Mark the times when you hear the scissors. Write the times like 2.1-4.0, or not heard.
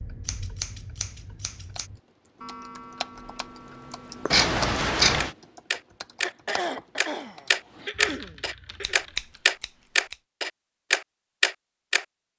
0.2-1.9, 4.3-5.3, 8.8-10.2.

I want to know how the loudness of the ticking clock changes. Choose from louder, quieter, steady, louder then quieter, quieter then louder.
louder.